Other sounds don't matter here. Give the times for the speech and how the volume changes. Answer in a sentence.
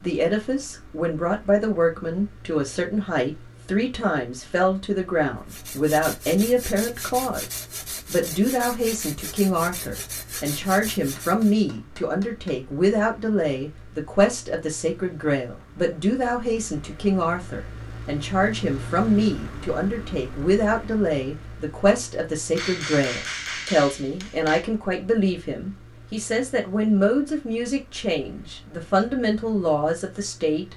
The speech can be heard from 0.0 to 30.7 s, at a steady volume.